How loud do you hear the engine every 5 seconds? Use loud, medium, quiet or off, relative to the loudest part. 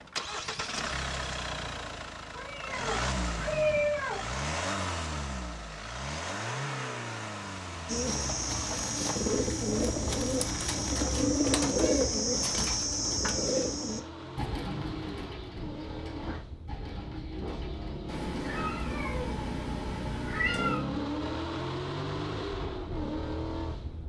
loud, loud, medium, medium, loud.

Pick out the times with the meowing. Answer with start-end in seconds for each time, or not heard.
2.4-4.2, 11.8-12.7, 18.1-20.9.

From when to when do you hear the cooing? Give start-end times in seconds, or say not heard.
7.8-18.7.